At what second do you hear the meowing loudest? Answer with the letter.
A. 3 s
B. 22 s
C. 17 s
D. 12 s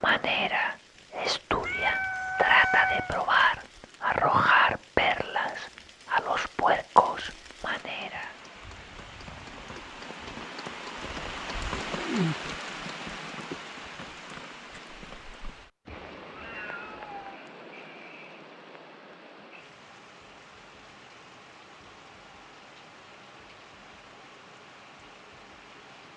A.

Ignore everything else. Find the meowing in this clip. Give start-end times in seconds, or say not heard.
1.6-3.1, 15.8-17.4.